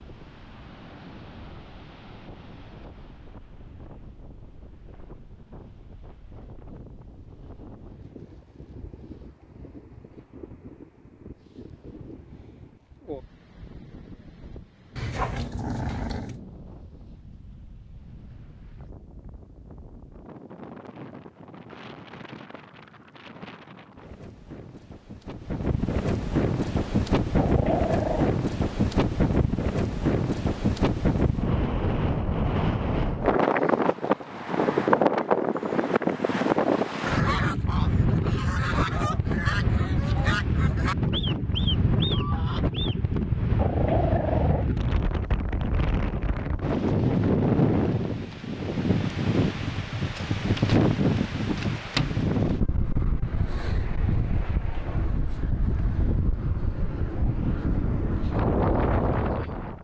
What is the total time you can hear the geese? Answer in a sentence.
You can hear the geese for 6 seconds altogether.